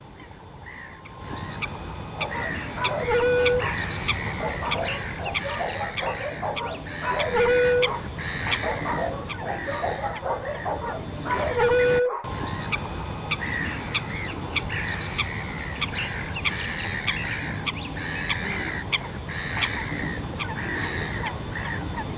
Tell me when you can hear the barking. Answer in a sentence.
The barking can be heard from 2.1 to 12.3 s.